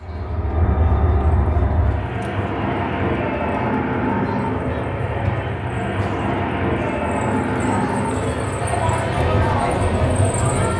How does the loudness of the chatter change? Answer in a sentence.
The volume of the chatter goes up.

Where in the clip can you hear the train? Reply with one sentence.
You can hear the train from 0.0 to 10.7 s.